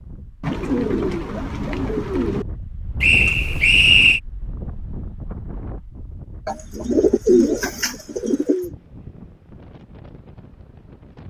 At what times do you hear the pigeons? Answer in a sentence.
The pigeons can be heard from 0.4 to 2.5 s and from 6.5 to 8.7 s.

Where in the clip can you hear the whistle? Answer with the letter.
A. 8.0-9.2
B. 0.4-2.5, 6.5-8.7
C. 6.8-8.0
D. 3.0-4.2
D.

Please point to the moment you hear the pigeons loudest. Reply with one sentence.
The volume of the pigeons peaks at 7 seconds.